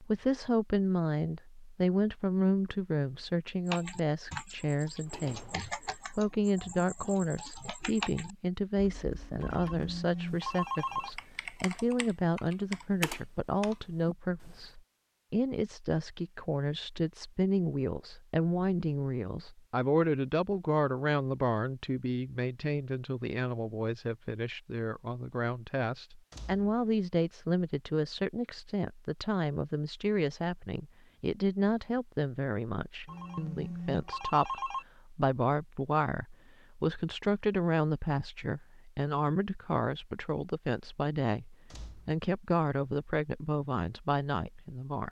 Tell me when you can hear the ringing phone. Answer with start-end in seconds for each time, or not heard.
9.4-11.1, 33.0-34.9.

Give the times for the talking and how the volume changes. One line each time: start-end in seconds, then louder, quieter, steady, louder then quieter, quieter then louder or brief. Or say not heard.
0.0-45.0 steady.